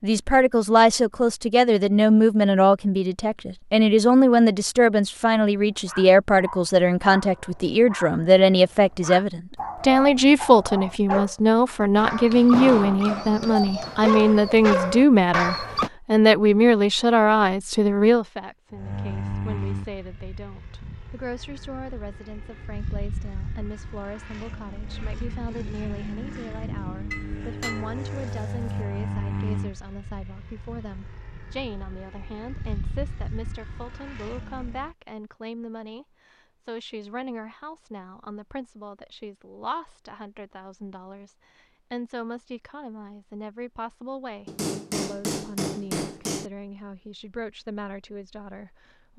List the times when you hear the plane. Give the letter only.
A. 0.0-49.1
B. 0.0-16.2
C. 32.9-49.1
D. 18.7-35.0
D.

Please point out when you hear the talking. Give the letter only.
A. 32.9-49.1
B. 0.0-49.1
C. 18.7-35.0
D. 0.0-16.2
B.